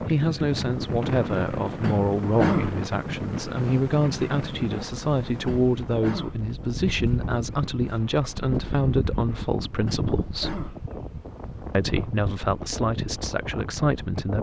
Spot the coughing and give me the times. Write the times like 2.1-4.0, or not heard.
1.8-2.9, 5.5-6.5, 9.8-10.8.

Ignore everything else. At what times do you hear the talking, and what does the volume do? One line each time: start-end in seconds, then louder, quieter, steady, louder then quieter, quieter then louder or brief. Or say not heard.
0.0-10.7 steady
11.7-14.3 brief.